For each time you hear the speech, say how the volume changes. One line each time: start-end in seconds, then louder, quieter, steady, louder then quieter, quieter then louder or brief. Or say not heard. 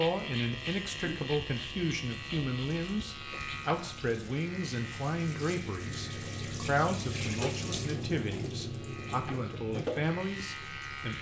0.0-11.1 steady.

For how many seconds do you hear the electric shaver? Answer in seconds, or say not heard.
11 s.